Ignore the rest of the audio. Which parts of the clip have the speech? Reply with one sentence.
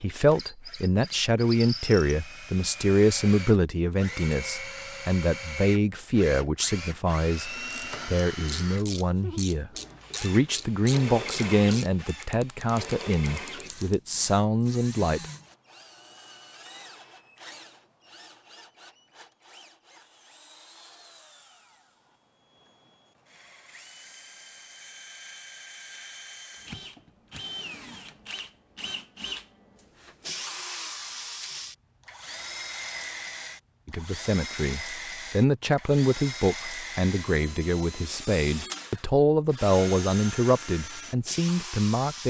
The speech can be heard from 0.0 to 15.2 s and from 33.9 to 42.2 s.